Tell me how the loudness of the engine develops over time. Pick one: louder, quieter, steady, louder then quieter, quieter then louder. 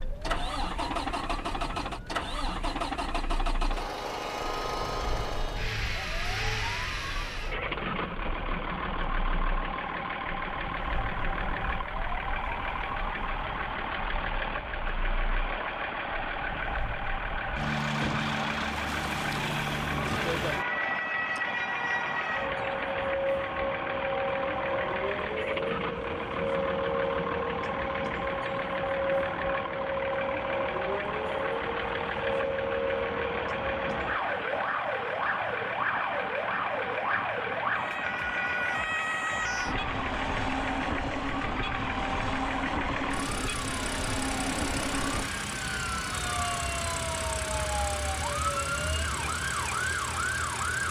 steady.